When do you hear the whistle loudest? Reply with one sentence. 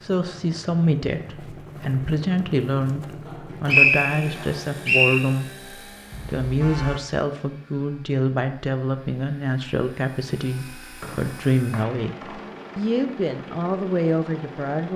The loudest moment of the whistle is at 4 seconds.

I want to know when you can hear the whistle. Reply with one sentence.
You can hear the whistle from 3.2 to 5.2 s and from 11.0 to 12.5 s.